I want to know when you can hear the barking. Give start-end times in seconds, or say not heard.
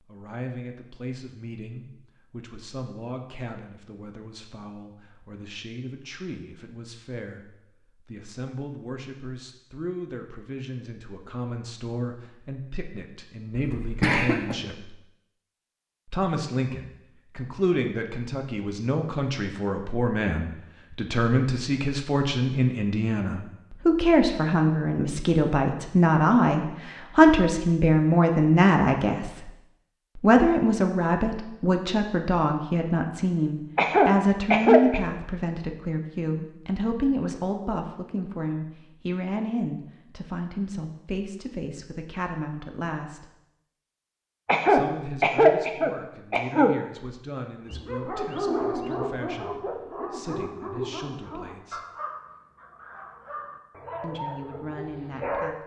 47.6-55.5.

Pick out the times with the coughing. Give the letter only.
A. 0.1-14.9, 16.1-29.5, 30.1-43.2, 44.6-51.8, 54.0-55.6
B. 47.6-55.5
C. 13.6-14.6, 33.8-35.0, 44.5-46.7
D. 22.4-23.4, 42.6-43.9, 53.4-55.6
C.